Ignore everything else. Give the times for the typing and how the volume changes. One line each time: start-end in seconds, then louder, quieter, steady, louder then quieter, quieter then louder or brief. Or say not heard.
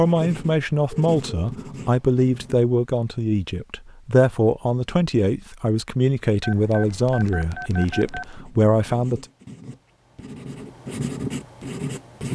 not heard.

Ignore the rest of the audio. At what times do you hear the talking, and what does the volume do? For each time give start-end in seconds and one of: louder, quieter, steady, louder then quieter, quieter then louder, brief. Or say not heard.
0.0-9.2 steady.